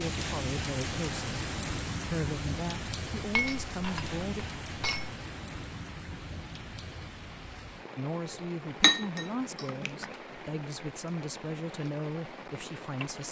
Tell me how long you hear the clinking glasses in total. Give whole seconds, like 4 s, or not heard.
3 s.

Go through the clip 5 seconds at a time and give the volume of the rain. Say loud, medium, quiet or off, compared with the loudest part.
loud, medium, medium.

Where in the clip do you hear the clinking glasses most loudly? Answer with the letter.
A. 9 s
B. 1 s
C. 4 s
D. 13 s
A.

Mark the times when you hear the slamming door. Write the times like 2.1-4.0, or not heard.
not heard.